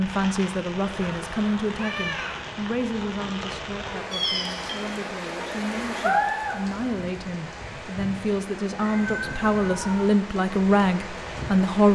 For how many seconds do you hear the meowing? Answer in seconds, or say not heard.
4 s.